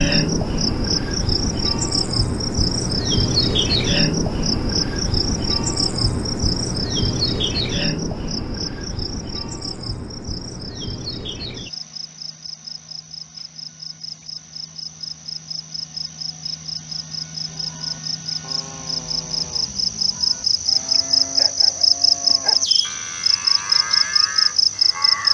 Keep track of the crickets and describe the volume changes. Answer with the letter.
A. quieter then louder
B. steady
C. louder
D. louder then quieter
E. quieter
A.